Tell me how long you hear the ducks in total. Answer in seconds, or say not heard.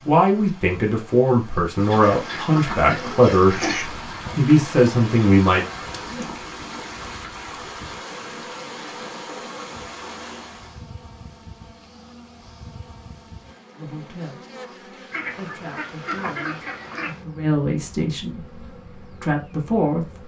4 s.